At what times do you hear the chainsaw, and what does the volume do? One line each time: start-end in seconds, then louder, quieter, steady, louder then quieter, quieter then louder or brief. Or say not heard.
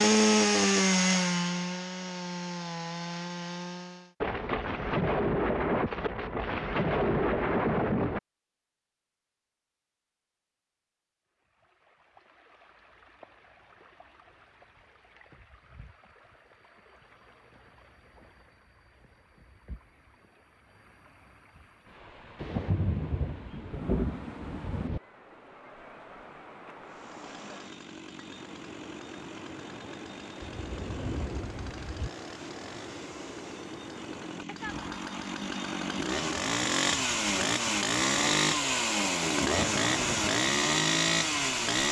0.0-4.2 quieter
26.9-41.8 louder.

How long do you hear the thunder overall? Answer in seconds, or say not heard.
8 s.